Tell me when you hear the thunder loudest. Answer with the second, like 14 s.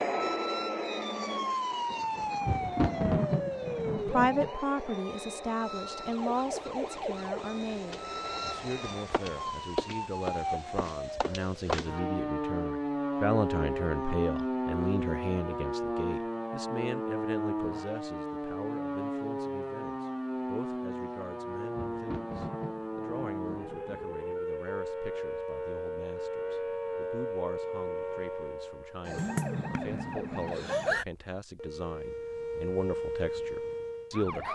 3 s.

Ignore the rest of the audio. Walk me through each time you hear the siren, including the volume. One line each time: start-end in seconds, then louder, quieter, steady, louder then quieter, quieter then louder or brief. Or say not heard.
0.0-34.5 steady.